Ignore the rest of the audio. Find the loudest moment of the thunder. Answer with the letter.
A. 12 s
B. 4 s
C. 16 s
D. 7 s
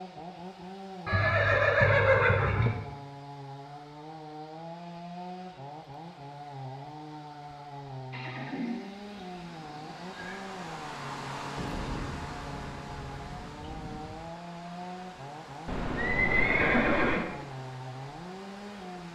A.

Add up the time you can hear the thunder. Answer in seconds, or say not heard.
3 s.